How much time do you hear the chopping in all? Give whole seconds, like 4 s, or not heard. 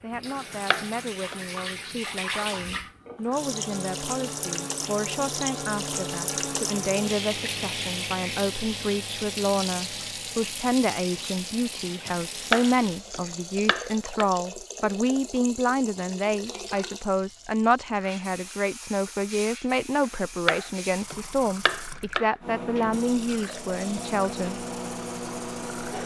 5 s.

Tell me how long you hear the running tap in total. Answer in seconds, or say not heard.
26 s.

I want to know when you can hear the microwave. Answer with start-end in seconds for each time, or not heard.
22.4-26.0.